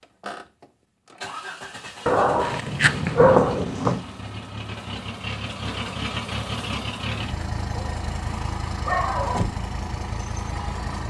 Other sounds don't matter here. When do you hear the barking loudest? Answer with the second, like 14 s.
3 s.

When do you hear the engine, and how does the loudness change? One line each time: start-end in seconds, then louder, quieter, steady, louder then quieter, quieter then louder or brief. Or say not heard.
0.0-11.0 louder.